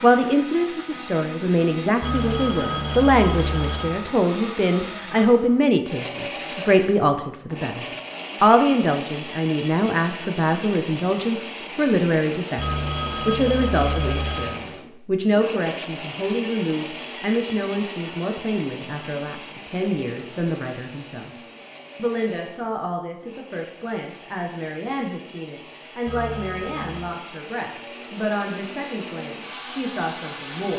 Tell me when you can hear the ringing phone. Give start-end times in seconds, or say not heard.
2.0-4.0, 12.6-14.6, 26.1-27.1.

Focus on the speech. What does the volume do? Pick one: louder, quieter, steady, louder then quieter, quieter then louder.
quieter.